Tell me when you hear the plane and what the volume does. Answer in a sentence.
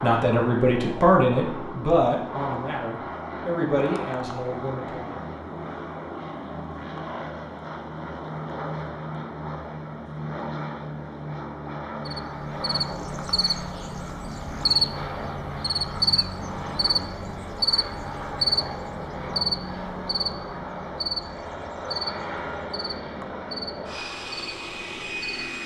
You can hear the plane from 0.0 to 25.6 s, at a steady volume.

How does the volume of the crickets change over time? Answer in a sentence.
The loudness of the crickets goes down.